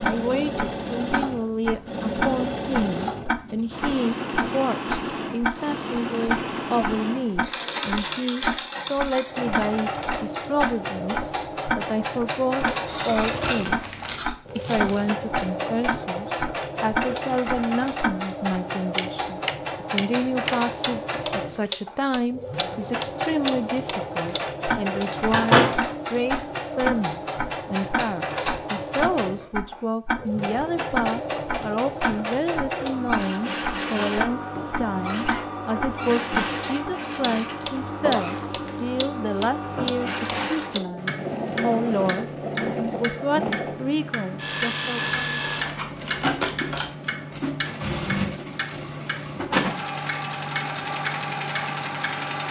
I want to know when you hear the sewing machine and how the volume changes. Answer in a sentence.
You can hear the sewing machine from 0.0 to 52.4 s, at a steady volume.